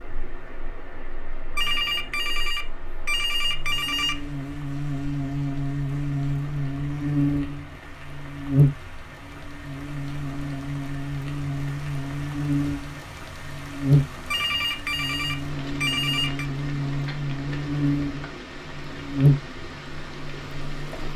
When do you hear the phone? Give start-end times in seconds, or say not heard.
1.6-4.2, 14.3-16.4.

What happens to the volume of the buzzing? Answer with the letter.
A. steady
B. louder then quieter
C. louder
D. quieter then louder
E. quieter
C.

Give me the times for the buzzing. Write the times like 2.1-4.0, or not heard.
0.0-21.1.